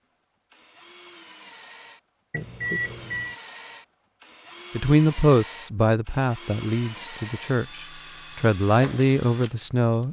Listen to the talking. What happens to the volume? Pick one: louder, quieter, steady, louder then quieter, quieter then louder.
quieter then louder.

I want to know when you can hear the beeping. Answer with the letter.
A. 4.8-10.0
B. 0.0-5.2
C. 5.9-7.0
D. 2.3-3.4
D.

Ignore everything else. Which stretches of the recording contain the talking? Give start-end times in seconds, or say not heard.
4.8-10.0.